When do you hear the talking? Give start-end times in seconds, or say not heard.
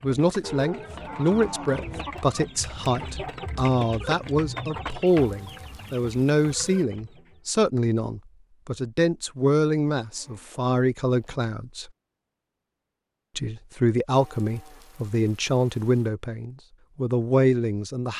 0.0-11.9, 13.3-18.1.